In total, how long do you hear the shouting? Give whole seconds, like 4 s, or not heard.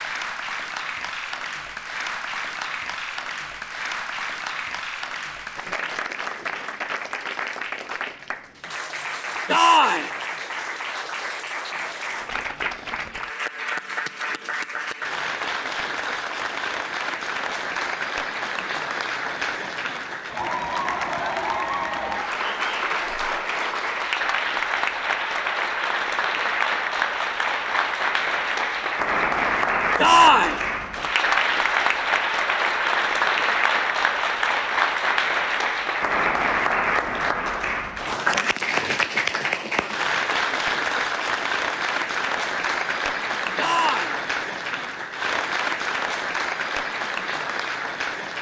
2 s.